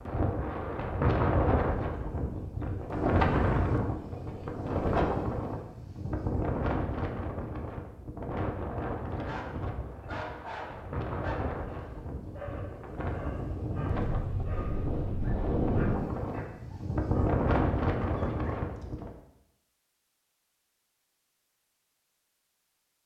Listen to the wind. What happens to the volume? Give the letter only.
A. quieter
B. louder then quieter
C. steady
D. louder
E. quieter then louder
E.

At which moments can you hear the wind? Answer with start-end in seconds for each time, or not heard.
0.0-19.1.